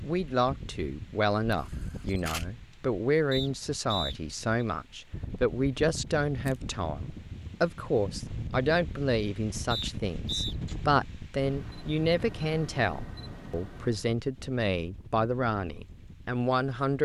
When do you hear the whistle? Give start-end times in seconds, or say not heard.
3.3-4.7, 9.7-10.6.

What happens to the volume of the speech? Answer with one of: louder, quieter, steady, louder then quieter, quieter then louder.
steady.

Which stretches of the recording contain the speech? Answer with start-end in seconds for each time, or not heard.
0.0-17.0.